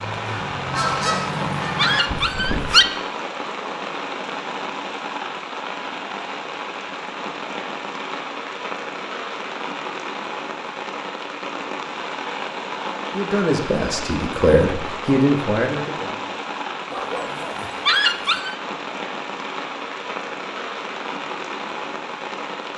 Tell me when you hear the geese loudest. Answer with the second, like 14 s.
1 s.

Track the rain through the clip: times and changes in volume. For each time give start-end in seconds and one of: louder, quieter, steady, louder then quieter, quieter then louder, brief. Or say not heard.
0.0-22.7 steady.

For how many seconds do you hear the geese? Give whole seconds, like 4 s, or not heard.
3 s.